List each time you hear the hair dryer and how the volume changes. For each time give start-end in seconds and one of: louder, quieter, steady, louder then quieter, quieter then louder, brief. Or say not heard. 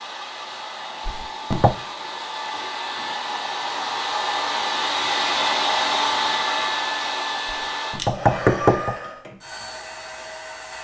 0.0-10.7 louder then quieter.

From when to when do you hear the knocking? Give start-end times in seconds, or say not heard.
1.1-1.8, 7.5-8.9.